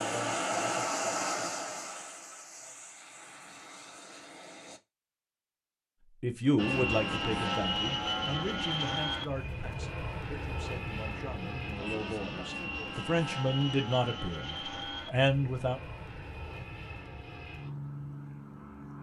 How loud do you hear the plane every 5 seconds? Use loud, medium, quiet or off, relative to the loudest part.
loud, loud, medium, medium.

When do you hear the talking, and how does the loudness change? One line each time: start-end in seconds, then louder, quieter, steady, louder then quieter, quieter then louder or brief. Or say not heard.
6.2-15.8 quieter then louder.